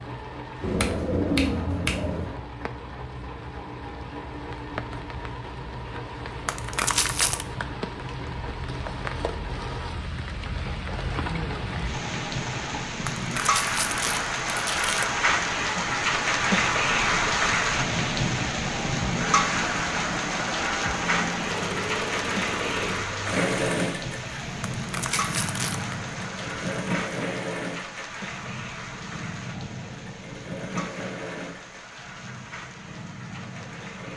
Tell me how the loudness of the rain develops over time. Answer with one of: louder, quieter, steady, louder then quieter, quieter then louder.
louder then quieter.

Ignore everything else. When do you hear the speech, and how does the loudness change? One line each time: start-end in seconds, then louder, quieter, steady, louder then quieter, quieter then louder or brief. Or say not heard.
not heard.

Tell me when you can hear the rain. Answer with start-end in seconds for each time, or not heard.
0.0-34.1.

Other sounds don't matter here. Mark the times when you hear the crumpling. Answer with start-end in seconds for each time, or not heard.
6.5-7.5, 13.1-15.1, 24.8-25.9.